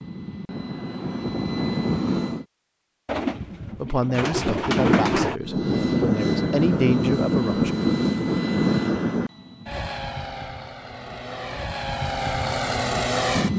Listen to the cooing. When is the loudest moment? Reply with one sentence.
The loudest moment of the cooing is at 5 seconds.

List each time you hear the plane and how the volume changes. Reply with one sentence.
The plane can be heard briefly from 0.0 to 2.5 s; and from 5.4 to 13.5 s, getting quieter then louder.